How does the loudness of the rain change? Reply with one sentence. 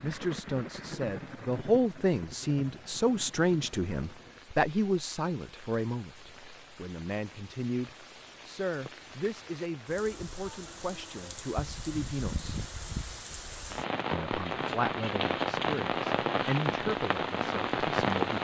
The loudness of the rain goes down, then up.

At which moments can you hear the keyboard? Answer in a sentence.
You can't hear the keyboard here.